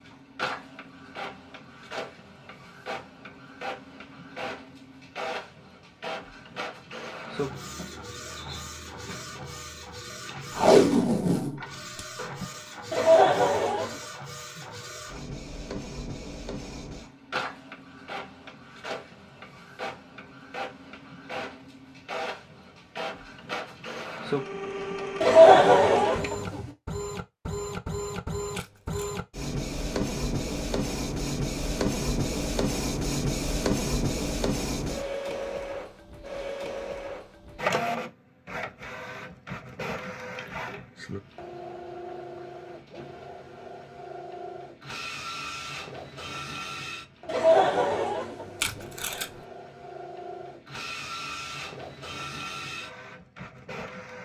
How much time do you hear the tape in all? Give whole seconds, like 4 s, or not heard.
3 s.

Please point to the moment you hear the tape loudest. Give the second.
11 s.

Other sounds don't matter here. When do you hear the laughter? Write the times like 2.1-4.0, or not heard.
12.9-13.9, 25.2-26.7, 47.2-48.8.